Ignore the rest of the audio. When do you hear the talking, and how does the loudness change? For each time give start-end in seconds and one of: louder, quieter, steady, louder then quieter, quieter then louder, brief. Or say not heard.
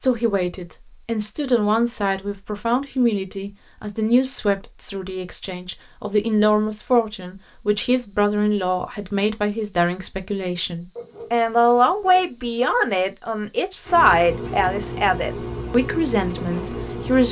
0.0-17.2 steady.